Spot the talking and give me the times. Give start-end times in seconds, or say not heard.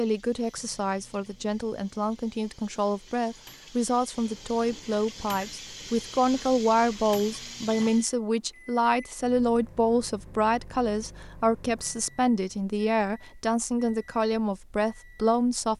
0.0-15.7.